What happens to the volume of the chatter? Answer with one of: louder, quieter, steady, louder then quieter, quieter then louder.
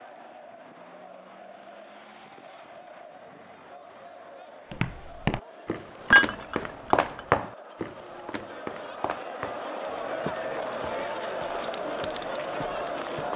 louder.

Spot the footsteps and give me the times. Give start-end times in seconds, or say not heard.
4.7-13.3.